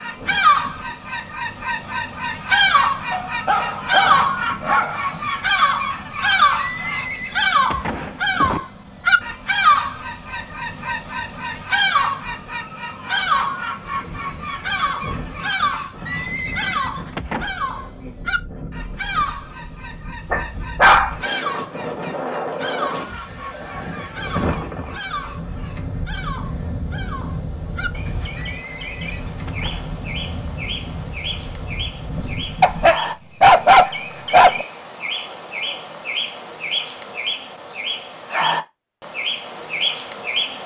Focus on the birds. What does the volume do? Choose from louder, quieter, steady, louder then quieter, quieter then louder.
quieter then louder.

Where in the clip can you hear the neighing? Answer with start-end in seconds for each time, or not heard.
6.5-8.6, 16.1-17.6, 28.4-29.9.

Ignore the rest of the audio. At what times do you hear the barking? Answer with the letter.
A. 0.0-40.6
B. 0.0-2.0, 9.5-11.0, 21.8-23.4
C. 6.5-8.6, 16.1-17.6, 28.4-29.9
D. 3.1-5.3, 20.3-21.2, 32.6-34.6
D.